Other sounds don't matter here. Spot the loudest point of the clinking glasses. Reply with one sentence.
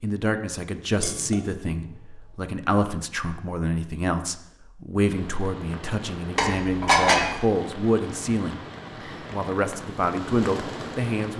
The loudest moment of the clinking glasses is at 7 seconds.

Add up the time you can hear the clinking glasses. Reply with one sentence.
You can hear the clinking glasses for 2 seconds altogether.